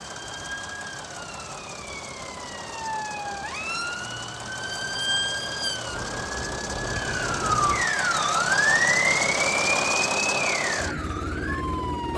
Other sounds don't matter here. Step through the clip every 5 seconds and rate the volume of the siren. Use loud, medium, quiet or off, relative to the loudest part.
medium, loud, medium.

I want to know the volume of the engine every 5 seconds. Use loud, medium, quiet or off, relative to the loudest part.
medium, loud, loud.